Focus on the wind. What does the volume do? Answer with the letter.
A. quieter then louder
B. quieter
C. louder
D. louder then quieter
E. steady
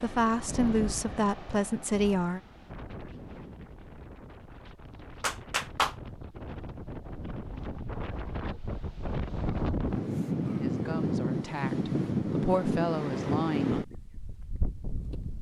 A.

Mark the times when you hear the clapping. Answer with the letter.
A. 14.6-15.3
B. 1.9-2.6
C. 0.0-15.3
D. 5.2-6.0
D.